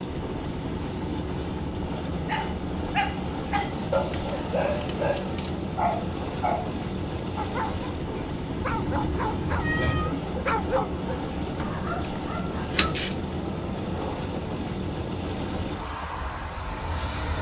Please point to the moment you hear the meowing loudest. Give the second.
10 s.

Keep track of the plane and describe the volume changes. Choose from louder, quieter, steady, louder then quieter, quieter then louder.
steady.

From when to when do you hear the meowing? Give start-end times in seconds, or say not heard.
8.6-10.2.